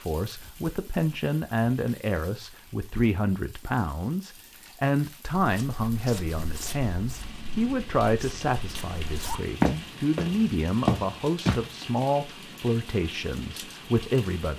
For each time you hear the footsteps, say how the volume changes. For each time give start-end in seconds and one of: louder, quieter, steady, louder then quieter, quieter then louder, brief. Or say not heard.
5.4-11.7 quieter then louder.